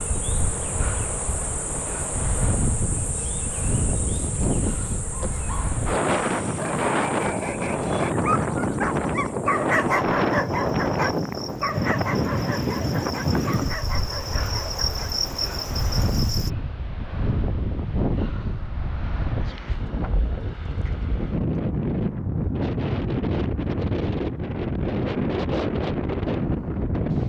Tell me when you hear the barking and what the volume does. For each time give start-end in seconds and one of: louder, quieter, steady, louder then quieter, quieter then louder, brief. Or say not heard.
5.0-15.2 louder then quieter.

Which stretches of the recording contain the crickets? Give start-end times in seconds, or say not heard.
0.0-16.5.